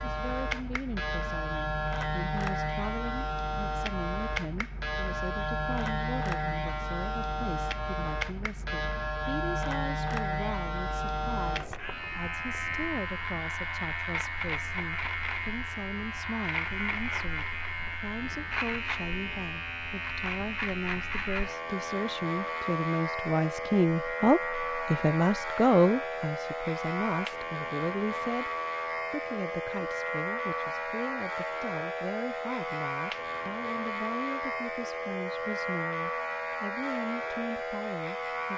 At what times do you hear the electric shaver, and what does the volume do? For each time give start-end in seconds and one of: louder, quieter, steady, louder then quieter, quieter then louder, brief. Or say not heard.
0.0-38.5 steady.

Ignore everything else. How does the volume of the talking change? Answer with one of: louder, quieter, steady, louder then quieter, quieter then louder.
louder then quieter.